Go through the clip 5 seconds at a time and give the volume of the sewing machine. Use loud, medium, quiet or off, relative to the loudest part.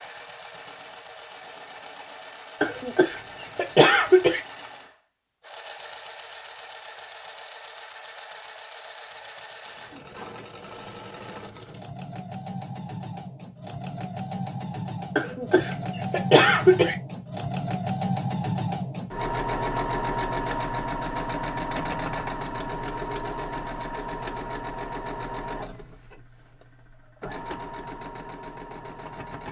quiet, quiet, medium, loud, loud, medium.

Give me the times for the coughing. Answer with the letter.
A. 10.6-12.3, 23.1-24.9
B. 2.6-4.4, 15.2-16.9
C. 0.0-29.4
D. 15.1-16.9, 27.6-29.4
B.